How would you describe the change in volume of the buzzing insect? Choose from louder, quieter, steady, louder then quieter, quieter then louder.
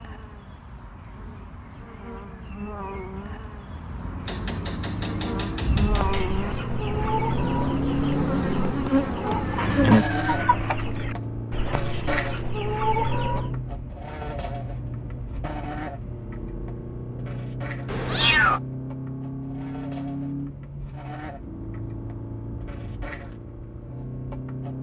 louder then quieter.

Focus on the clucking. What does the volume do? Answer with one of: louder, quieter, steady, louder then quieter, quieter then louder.
quieter then louder.